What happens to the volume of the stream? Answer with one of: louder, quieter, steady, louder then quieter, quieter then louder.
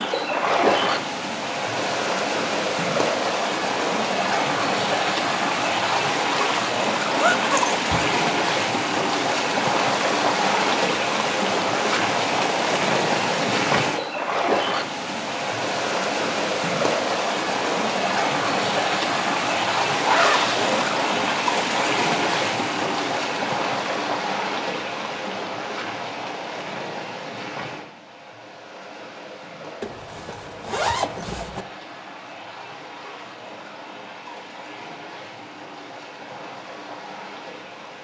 quieter.